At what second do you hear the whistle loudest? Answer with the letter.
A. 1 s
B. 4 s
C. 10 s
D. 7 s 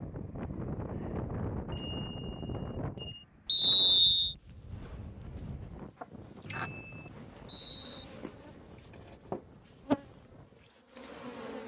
B.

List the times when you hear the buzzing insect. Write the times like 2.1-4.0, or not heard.
4.3-11.6.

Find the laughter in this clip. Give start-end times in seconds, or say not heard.
not heard.